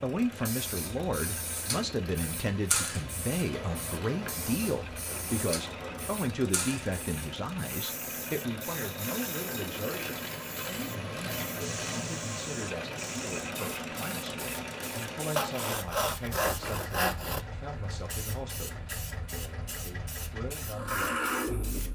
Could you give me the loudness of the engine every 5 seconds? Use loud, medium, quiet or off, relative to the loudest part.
medium, medium, loud, medium, loud.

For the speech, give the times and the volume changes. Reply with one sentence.
You can hear the speech from 0.0 to 21.9 s, getting quieter.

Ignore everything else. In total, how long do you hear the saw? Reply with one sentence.
You can hear the saw for 5 seconds altogether.